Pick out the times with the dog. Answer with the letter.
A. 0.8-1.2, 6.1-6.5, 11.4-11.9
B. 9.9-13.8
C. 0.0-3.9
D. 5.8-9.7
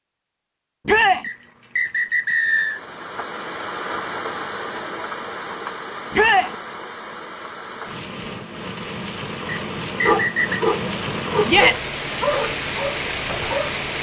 B.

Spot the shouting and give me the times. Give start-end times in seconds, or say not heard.
0.8-1.2, 6.1-6.5, 11.4-11.9.